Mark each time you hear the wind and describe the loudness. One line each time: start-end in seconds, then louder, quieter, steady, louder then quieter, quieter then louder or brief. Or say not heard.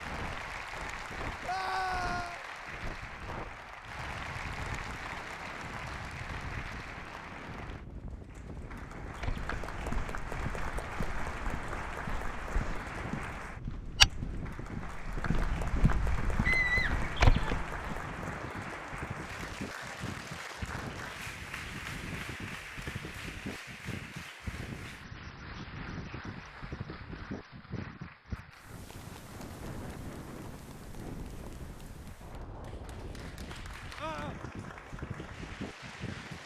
0.0-36.4 steady.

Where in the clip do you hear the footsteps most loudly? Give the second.
14 s.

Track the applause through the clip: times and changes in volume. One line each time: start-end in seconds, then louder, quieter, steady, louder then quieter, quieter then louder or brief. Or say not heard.
0.0-36.4 quieter.